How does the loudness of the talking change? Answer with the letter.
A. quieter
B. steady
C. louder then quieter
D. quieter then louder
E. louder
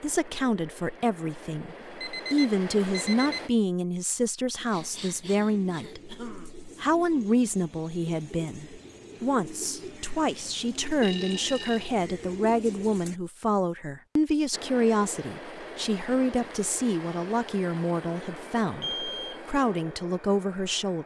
B.